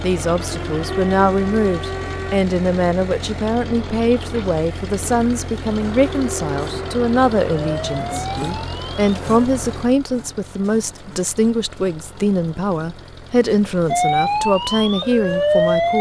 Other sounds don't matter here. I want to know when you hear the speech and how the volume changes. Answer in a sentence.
You can hear the speech from 0.0 to 15.9 s, at a steady volume.